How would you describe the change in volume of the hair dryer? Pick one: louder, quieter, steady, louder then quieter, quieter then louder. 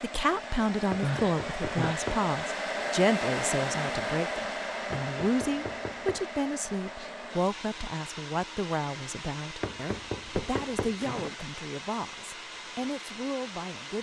quieter.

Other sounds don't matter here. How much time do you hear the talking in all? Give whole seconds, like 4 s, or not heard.
14 s.